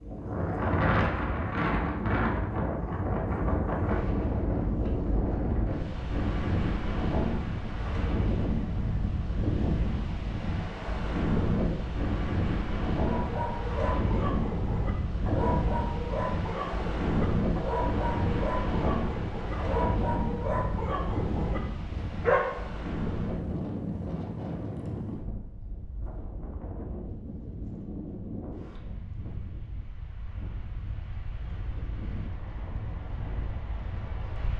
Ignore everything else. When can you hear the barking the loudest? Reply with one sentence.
The volume of the barking peaks at 22 seconds.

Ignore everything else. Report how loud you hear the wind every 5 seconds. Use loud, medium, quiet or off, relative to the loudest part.
loud, loud, loud, loud, medium, quiet, quiet.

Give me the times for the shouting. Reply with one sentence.
You can't hear the shouting here.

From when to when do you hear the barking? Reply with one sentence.
You can hear the barking from 13.0 to 22.6 s.